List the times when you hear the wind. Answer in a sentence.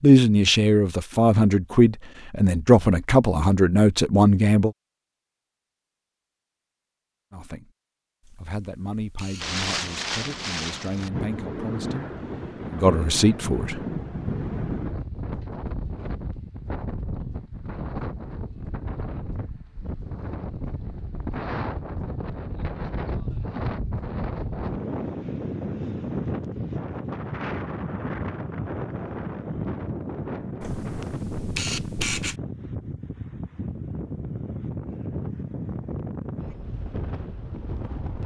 The wind can be heard from 9.4 to 38.2 s.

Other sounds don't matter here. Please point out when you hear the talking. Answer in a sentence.
The talking can be heard from 0.0 to 4.7 s, from 7.3 to 7.7 s and from 8.3 to 13.8 s.